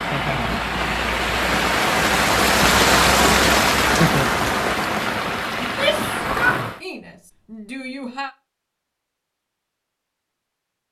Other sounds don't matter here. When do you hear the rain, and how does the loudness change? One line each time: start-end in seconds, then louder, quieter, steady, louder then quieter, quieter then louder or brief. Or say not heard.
0.0-6.8 louder then quieter.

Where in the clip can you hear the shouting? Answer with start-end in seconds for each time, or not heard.
5.6-8.3.